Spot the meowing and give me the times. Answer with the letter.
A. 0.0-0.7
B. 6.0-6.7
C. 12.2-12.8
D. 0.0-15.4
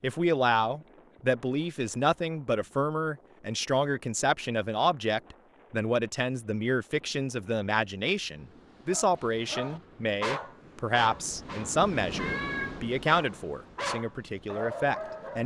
C.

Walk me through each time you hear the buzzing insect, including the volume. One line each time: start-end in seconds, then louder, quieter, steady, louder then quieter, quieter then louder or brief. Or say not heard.
not heard.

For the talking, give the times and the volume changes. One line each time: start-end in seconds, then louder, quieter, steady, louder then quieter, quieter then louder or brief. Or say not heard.
0.0-15.4 steady.